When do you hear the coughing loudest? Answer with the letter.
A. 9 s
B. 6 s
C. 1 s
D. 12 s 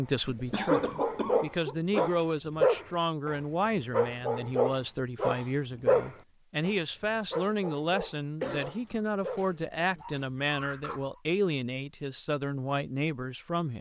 C.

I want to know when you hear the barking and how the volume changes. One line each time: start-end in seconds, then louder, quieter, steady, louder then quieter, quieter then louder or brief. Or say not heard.
0.7-11.2 quieter.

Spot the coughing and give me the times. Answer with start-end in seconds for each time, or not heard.
0.2-2.1, 8.4-10.1.